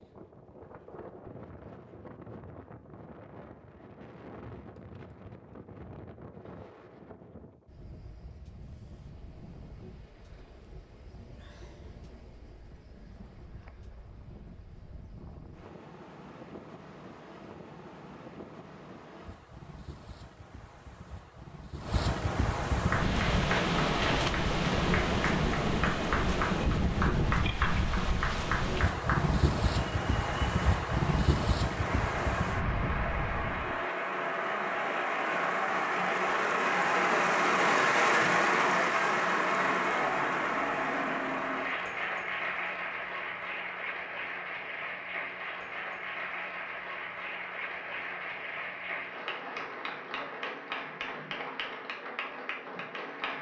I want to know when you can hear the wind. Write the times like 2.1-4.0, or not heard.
0.0-33.8.